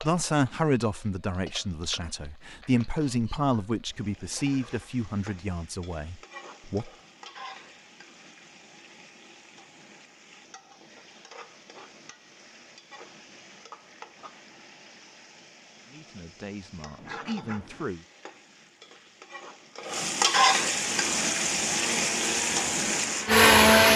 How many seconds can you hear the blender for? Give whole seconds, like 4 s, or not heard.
3 s.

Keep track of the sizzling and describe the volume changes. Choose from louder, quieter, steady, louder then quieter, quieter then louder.
louder.